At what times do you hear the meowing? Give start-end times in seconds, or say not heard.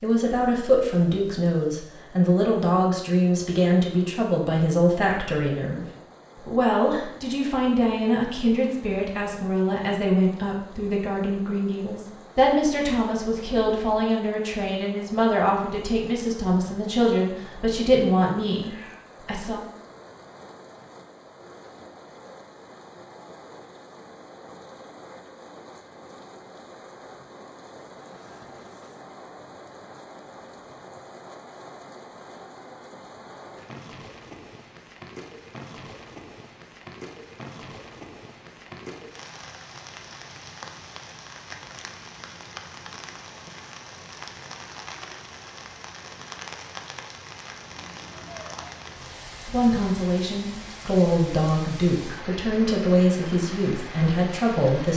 18.6-19.1, 47.6-49.1.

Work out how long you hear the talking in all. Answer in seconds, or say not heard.
25 s.